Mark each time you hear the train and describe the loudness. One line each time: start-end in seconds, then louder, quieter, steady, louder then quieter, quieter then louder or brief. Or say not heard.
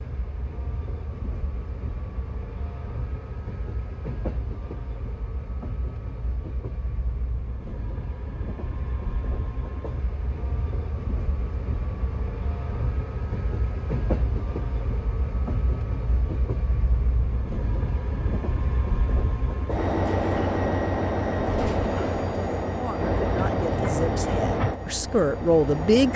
0.0-26.1 louder.